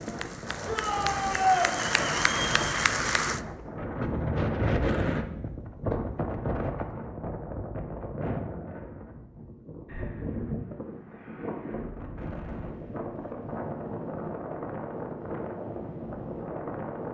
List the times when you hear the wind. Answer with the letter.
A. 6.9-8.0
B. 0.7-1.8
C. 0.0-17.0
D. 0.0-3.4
C.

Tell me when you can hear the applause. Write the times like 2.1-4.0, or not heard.
0.0-3.4.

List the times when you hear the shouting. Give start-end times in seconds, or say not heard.
0.7-1.8.